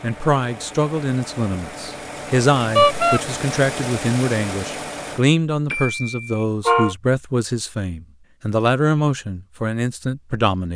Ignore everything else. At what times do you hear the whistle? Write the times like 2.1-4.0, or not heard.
not heard.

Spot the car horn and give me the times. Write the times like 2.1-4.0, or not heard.
2.8-3.2, 5.7-7.0.